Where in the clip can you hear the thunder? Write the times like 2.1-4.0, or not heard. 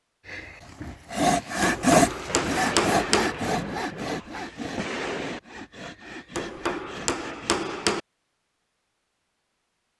2.0-5.4.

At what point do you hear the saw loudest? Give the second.
2 s.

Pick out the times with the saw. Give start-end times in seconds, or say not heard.
0.2-7.7.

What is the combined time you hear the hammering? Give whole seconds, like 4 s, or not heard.
3 s.